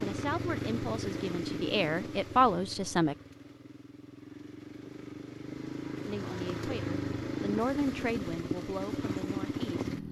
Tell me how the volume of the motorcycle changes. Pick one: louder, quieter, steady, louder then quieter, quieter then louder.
quieter then louder.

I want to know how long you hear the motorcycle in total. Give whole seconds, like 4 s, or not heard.
10 s.